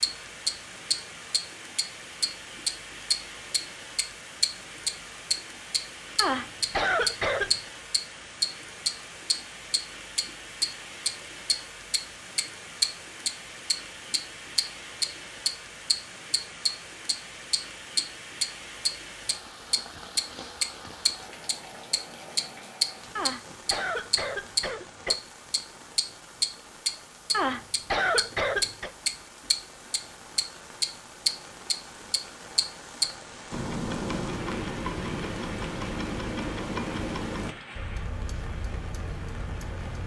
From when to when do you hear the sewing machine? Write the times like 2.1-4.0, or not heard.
not heard.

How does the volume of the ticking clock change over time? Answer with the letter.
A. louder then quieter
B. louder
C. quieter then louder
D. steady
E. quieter
E.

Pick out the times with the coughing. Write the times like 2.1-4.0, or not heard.
6.2-7.7, 23.1-25.1, 27.3-28.9.